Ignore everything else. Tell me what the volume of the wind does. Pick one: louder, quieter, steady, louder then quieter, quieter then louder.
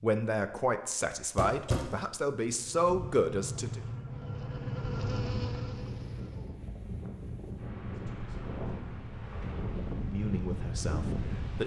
louder.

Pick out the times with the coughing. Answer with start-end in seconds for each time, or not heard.
1.4-1.9.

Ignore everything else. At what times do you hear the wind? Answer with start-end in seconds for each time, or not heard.
5.7-11.6.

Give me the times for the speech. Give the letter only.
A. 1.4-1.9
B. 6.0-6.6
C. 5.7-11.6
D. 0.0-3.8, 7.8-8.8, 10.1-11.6
D.